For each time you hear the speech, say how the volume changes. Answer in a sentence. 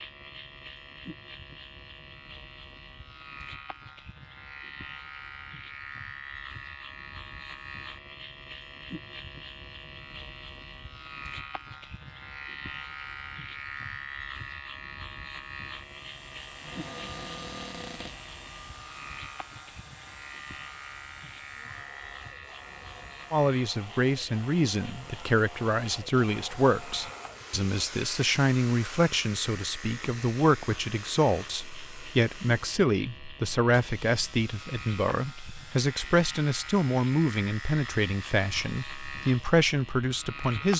You can hear the speech from 23.3 to 40.7 s, at a steady volume.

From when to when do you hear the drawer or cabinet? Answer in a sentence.
The drawer or cabinet can be heard from 16.6 to 18.2 s.